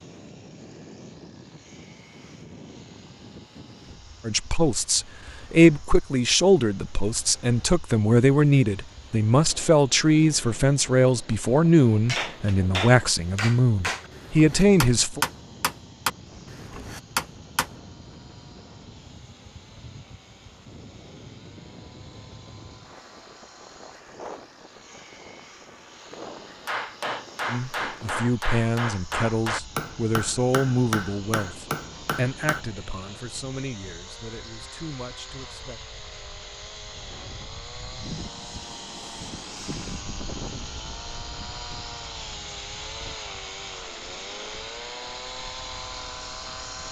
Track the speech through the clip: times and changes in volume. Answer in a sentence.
The speech can be heard from 4.2 to 15.2 s, at a steady volume; and from 27.4 to 35.8 s, getting quieter.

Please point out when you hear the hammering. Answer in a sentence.
The hammering can be heard from 12.1 to 17.8 s and from 26.6 to 32.6 s.